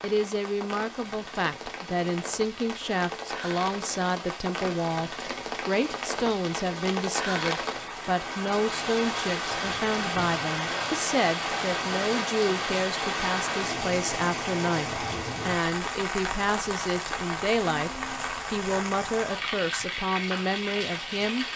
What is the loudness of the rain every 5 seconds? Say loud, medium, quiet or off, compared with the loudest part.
medium, loud, loud, loud, loud.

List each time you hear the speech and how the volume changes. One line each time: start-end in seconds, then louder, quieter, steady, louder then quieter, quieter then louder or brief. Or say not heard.
0.0-21.4 steady.